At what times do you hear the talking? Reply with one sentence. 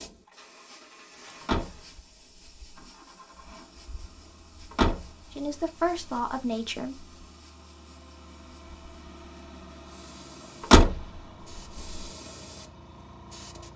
You can hear the talking from 5.3 to 7.0 s.